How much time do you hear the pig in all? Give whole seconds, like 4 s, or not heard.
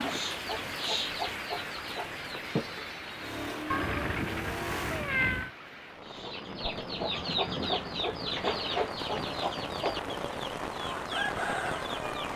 not heard.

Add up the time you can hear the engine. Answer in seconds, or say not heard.
2 s.